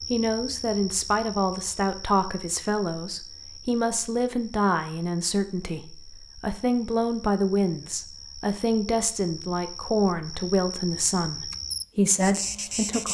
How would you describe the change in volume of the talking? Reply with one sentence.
The loudness of the talking stays about the same.